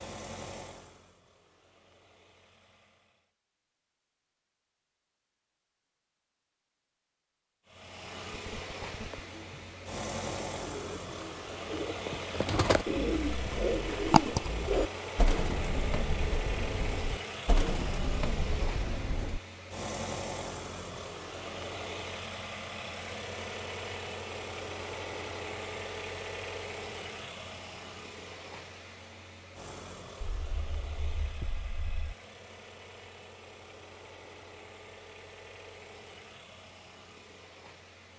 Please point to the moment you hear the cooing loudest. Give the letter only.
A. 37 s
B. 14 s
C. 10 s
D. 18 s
B.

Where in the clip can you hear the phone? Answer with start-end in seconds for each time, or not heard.
8.3-9.2, 30.2-32.1.